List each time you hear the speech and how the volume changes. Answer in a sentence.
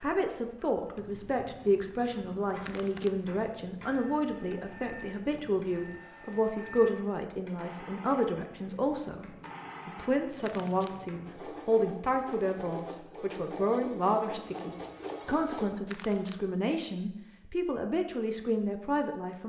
You can hear the speech from 0.0 to 19.4 s, at a steady volume.